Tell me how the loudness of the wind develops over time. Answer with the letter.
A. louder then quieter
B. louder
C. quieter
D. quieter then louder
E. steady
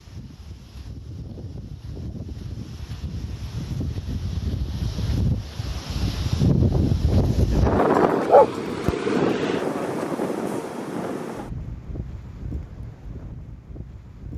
A.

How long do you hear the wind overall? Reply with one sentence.
The wind can be heard for 14 seconds in total.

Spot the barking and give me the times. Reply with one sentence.
You can hear the barking from 8.2 to 8.9 s.